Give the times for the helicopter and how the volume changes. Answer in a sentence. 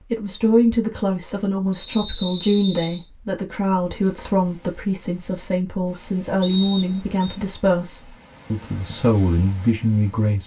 You can't hear the helicopter here.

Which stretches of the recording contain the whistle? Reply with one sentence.
You can hear the whistle from 1.7 to 3.0 s and from 6.4 to 7.3 s.